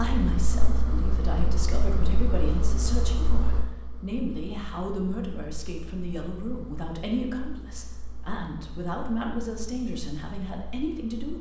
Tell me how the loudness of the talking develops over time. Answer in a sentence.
The loudness of the talking stays about the same.